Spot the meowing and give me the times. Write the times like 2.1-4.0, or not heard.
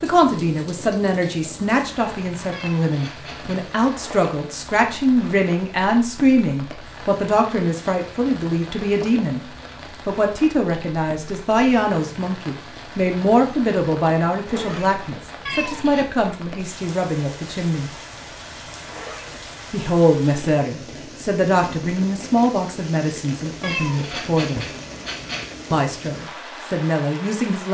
2.5-3.6, 15.4-16.1, 23.6-25.6.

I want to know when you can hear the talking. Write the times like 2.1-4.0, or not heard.
0.0-9.4, 10.1-17.9, 19.7-24.6, 25.7-27.6.